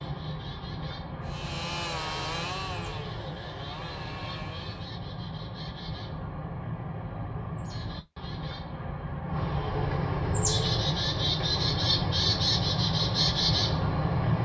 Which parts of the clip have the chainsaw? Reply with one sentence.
You can hear the chainsaw from 1.2 to 5.0 s.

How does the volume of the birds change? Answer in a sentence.
The loudness of the birds goes up.